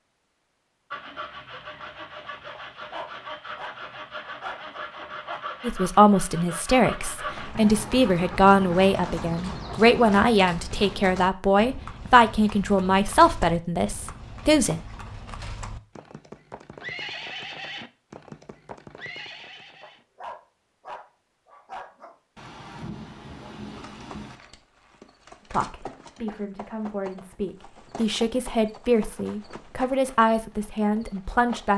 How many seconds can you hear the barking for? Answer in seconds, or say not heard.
5 s.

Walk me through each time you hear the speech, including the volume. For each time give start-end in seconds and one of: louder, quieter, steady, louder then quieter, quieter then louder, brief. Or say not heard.
5.6-14.8 steady
25.5-31.7 louder.